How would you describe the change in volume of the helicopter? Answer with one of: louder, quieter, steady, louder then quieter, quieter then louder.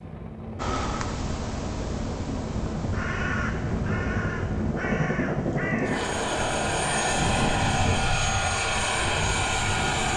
louder.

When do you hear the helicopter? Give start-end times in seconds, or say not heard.
0.0-10.1.